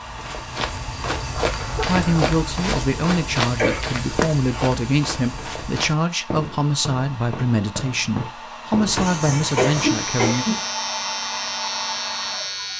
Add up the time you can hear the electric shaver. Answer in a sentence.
You can hear the electric shaver for 4 seconds altogether.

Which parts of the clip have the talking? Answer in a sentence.
The talking can be heard from 1.8 to 10.4 s.